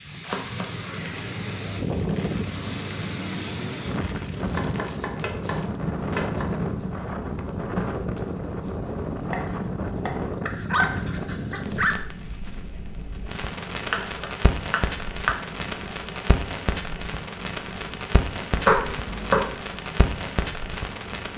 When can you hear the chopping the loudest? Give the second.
19 s.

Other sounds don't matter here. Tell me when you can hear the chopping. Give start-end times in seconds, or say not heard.
0.1-0.9, 4.5-6.5, 9.3-11.0, 13.9-15.3, 18.5-19.6.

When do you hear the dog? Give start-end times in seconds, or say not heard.
10.4-11.9.